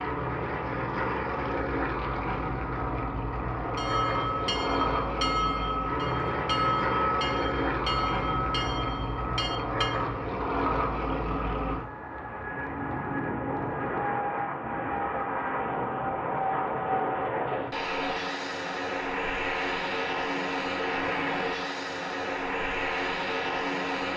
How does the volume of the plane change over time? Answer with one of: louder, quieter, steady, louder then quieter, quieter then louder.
steady.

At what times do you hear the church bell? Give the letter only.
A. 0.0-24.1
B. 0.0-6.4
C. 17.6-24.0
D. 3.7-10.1
D.